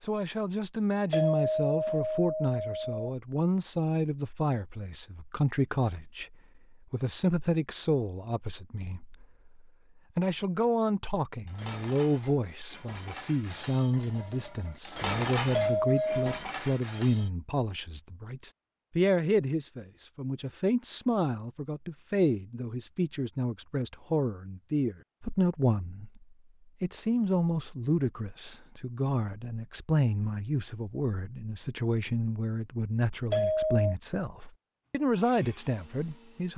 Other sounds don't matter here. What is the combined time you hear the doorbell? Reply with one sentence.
You can hear the doorbell for 3 seconds altogether.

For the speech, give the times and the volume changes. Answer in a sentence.
The speech can be heard from 0.0 to 36.5 s, at a steady volume.